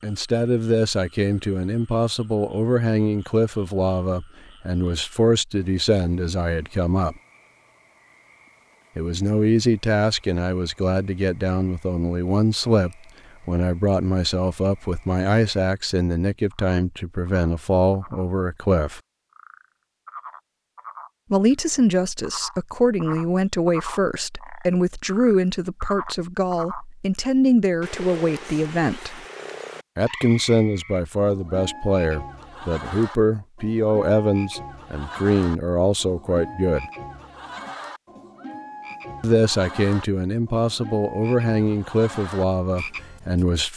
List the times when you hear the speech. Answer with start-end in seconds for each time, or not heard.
0.0-7.2, 8.9-19.0, 21.3-29.2, 29.9-36.9, 39.2-43.7.